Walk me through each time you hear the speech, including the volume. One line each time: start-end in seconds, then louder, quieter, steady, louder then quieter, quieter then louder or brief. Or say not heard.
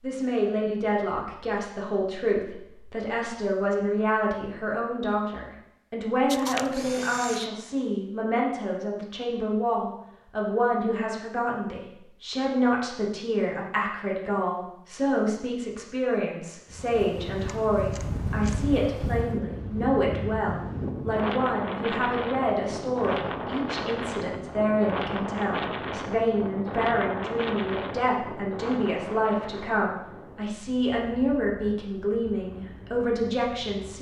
0.0-33.9 steady.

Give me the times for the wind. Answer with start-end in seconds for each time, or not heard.
16.7-33.9.